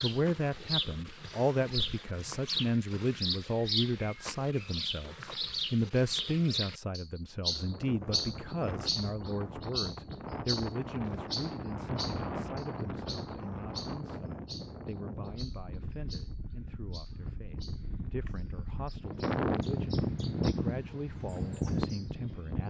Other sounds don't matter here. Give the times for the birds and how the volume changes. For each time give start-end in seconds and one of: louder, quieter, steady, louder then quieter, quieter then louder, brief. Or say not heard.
0.0-22.6 quieter.